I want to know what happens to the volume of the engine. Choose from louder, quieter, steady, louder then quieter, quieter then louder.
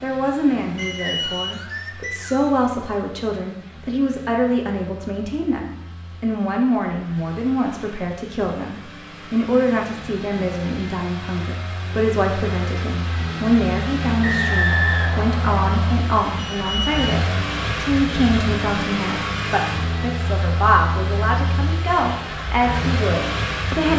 louder.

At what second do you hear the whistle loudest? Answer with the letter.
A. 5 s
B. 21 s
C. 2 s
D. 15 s
D.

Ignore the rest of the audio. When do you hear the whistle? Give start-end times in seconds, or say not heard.
0.8-2.6, 14.2-15.9.